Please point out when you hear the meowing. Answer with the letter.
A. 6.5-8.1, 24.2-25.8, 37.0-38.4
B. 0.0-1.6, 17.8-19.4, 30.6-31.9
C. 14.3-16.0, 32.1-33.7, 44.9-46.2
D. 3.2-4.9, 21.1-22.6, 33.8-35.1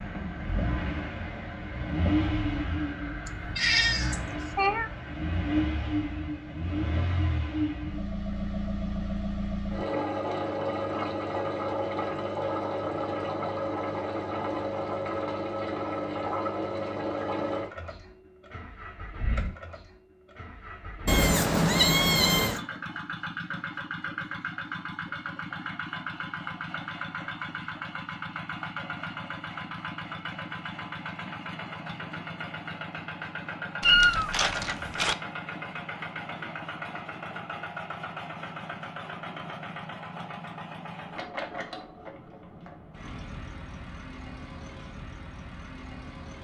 D.